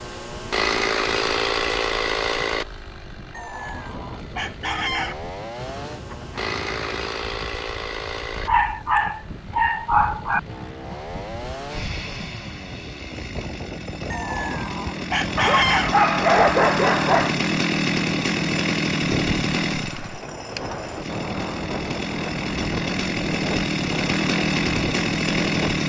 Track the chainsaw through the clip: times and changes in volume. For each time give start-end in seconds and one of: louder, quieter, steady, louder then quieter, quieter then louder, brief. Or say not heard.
0.0-25.8 quieter then louder.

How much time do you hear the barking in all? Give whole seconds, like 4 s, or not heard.
4 s.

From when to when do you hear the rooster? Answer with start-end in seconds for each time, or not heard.
3.3-5.2, 14.1-15.9.